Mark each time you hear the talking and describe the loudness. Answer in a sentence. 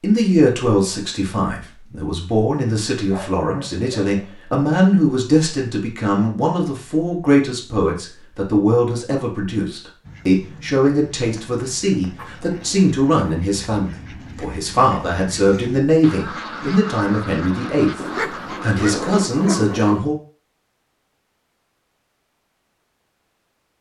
The talking can be heard from 0.0 to 18.0 s, at a steady volume; and briefly from 18.6 to 20.1 s.